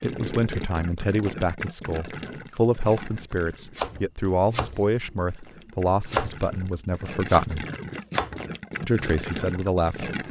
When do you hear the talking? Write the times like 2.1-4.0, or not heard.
0.0-7.7, 8.8-10.1.